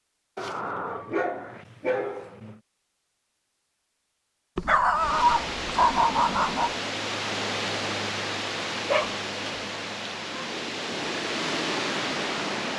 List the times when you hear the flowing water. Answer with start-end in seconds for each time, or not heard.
4.9-12.7.